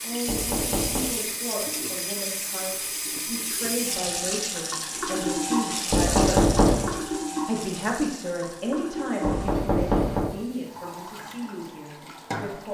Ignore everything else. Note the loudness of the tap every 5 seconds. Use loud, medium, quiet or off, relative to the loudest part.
loud, loud, medium.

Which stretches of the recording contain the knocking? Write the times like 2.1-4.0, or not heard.
0.2-1.1, 5.9-6.9, 9.2-10.3.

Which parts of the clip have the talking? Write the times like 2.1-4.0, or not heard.
0.0-6.5, 7.5-12.6.